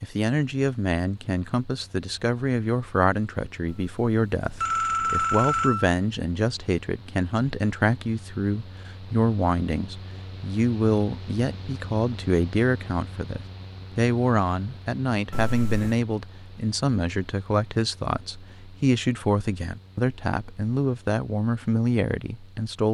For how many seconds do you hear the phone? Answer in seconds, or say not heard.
3 s.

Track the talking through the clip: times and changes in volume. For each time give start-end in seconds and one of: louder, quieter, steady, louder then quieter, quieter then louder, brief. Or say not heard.
0.0-22.8 steady.